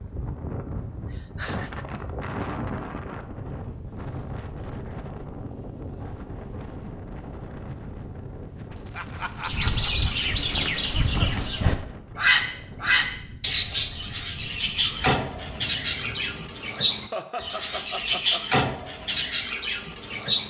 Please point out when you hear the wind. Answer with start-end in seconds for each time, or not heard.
0.0-16.7.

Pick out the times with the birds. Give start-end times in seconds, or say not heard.
9.4-20.4.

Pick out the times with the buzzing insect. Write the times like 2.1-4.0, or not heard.
not heard.